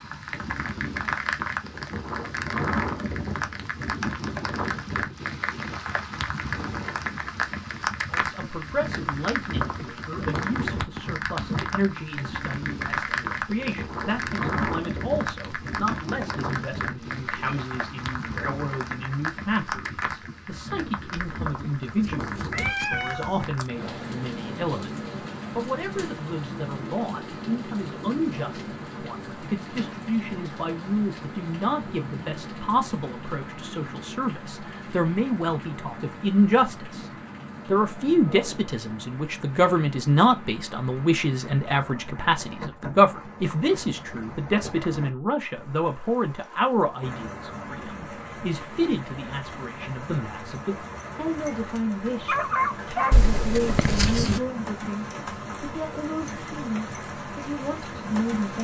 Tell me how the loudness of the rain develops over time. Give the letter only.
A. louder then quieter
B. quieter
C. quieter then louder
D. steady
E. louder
B.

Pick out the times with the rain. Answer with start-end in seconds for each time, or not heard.
0.0-58.5.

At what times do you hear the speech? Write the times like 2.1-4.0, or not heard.
8.1-58.5.